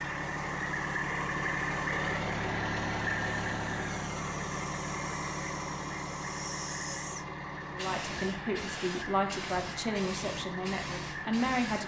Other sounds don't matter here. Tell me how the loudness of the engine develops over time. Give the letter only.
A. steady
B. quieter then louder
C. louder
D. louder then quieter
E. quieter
E.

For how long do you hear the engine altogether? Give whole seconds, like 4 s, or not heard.
12 s.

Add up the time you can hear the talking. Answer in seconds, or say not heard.
4 s.